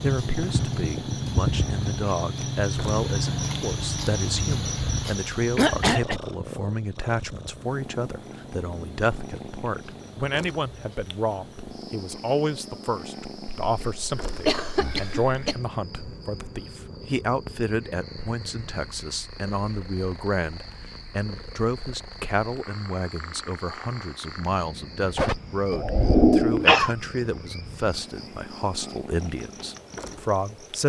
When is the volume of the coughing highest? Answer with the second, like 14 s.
26 s.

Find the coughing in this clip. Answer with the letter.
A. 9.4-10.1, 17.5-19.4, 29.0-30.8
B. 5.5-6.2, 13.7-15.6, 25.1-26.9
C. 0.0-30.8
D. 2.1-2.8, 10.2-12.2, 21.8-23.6
B.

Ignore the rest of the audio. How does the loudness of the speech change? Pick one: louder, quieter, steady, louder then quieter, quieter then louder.
steady.